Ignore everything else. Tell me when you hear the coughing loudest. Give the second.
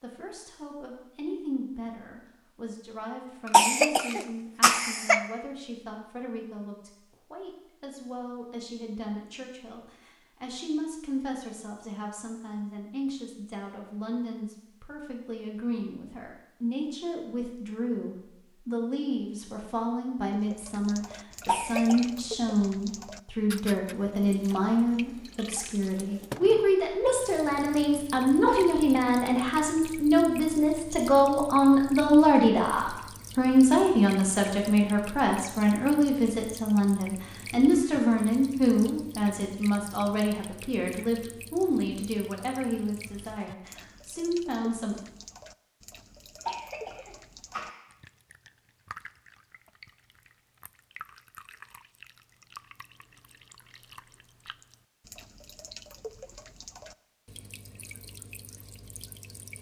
4 s.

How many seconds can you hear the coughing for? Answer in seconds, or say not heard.
4 s.